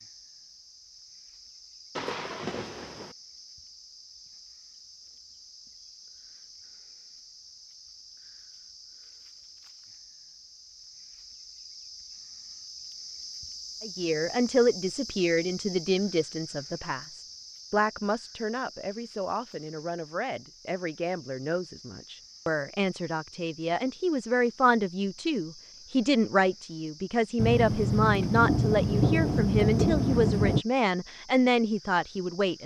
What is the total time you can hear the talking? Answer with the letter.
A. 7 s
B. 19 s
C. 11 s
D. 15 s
B.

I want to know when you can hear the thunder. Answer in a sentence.
You can hear the thunder from 1.9 to 3.1 s and from 27.4 to 30.6 s.